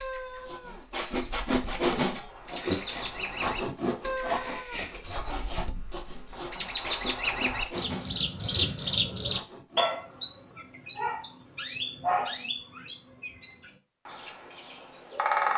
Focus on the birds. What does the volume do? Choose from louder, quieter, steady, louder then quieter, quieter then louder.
louder then quieter.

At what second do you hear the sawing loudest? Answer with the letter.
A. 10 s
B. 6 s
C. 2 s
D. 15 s
C.